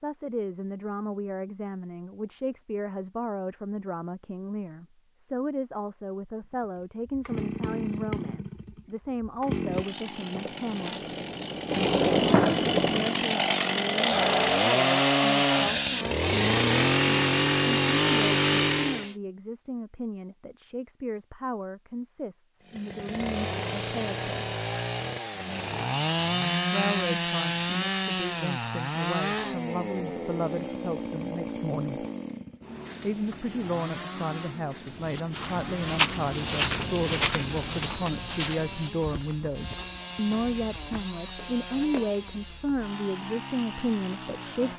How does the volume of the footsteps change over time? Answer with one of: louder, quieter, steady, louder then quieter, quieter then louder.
quieter.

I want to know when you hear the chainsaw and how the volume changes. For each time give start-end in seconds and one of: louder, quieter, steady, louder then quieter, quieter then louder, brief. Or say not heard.
6.5-19.1 louder
22.6-44.7 quieter.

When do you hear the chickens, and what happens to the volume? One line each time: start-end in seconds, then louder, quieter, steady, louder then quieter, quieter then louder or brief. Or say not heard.
not heard.